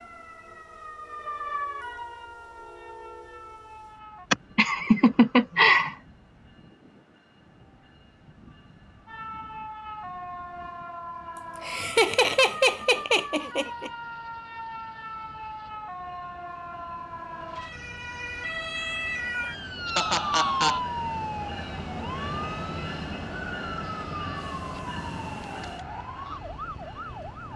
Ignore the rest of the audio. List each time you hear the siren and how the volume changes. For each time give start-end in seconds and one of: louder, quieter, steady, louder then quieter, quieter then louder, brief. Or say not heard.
0.0-4.3 louder then quieter
9.1-27.5 louder then quieter.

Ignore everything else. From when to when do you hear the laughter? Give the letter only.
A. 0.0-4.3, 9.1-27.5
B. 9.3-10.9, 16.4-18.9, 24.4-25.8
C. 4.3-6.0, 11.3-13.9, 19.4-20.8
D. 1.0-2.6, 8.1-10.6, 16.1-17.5
C.